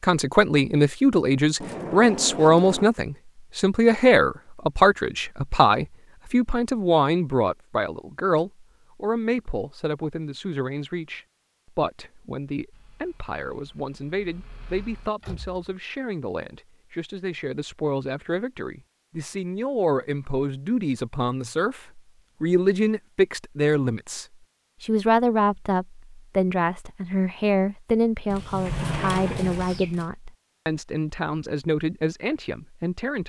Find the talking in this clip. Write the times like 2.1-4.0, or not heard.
0.0-33.2.